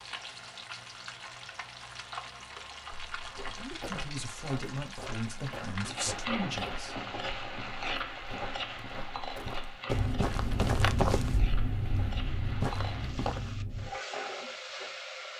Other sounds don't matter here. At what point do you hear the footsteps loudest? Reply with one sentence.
The loudest moment of the footsteps is at 11 seconds.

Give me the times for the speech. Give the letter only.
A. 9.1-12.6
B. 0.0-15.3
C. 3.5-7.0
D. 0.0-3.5
C.